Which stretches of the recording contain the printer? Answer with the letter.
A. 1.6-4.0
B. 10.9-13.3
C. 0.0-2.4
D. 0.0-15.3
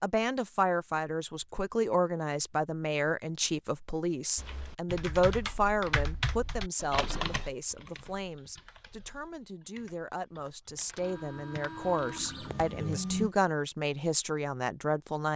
B.